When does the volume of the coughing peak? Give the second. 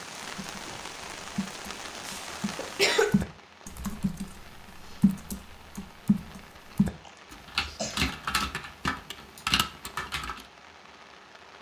3 s.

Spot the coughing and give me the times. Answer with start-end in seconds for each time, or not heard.
2.0-3.2, 7.0-8.1.